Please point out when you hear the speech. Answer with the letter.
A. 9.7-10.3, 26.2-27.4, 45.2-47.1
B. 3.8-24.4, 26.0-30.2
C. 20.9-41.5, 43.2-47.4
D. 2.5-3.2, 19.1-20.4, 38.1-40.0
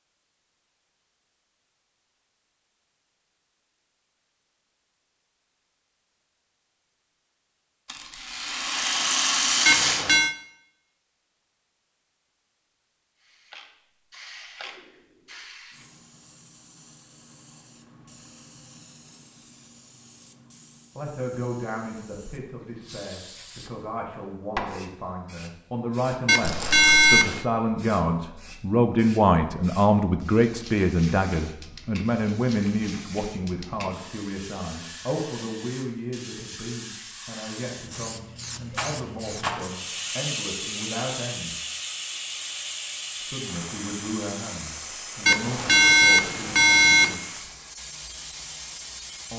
C.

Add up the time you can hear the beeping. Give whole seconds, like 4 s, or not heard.
4 s.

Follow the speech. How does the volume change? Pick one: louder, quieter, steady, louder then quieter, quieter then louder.
louder then quieter.